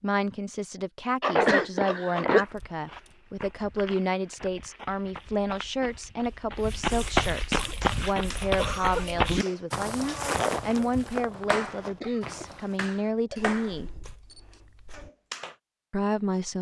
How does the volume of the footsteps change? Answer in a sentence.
The loudness of the footsteps goes up, then down.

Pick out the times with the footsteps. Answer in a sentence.
You can hear the footsteps from 2.3 to 12.8 s.